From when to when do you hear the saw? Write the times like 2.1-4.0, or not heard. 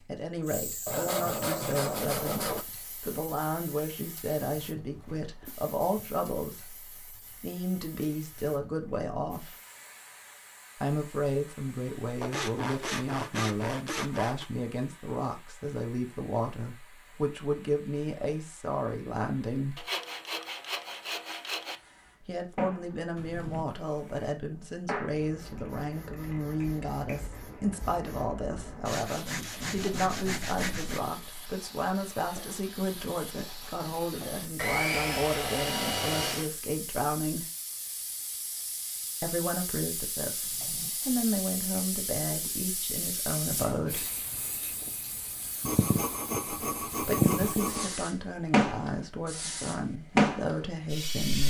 0.8-2.6, 12.2-14.4, 19.8-21.8, 28.9-31.0, 34.5-36.5, 45.6-48.0.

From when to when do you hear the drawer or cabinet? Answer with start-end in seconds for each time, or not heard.
5.0-5.6, 23.1-23.6, 40.4-40.9.